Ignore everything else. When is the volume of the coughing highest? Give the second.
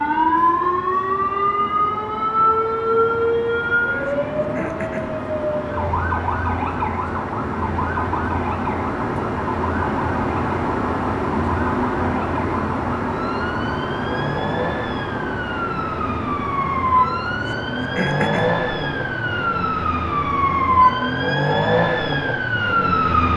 18 s.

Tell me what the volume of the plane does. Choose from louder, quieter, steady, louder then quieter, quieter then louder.
louder then quieter.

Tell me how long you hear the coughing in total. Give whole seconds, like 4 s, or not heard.
2 s.